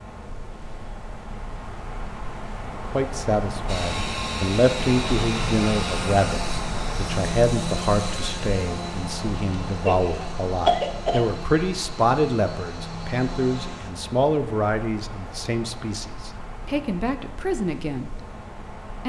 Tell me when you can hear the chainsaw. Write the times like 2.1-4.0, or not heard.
3.6-13.9.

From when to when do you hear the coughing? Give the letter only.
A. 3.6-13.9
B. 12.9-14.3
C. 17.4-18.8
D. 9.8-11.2
D.